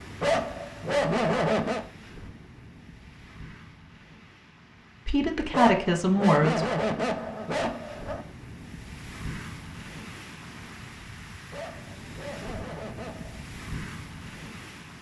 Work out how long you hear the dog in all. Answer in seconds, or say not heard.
6 s.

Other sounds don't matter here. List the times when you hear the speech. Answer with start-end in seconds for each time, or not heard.
5.0-6.7.